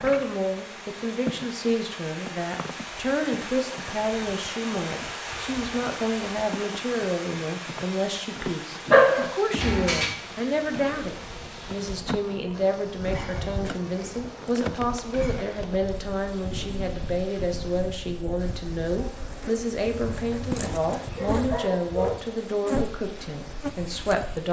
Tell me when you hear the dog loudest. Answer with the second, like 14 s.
9 s.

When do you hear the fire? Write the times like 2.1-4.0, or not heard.
not heard.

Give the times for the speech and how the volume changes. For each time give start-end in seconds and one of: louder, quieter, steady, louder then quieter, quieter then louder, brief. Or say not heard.
0.0-24.4 steady.